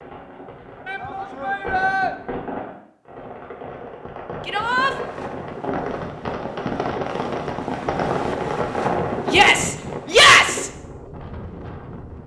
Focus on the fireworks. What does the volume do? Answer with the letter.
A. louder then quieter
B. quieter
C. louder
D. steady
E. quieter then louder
C.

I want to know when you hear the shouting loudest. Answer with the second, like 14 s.
10 s.